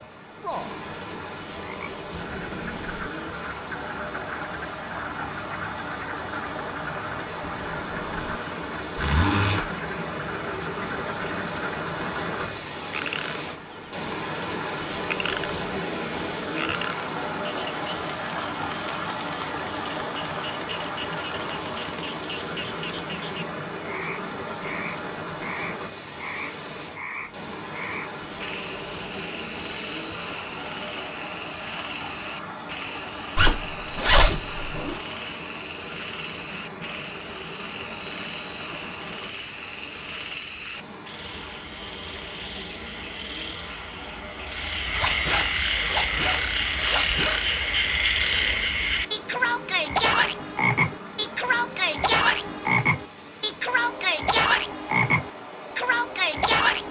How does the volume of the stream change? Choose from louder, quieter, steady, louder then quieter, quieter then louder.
quieter.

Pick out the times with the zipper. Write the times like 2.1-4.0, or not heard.
8.9-9.7, 33.4-35.0, 44.9-47.4.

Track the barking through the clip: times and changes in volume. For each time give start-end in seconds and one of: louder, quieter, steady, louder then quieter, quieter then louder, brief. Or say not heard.
not heard.